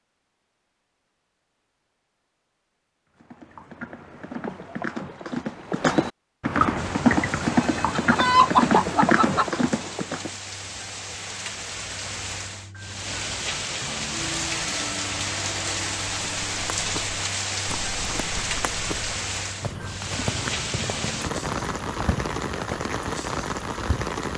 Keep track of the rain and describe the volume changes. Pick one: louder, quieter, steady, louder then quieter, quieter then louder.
louder.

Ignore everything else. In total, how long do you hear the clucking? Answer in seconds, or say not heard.
2 s.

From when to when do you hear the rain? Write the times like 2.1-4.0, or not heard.
6.8-24.3.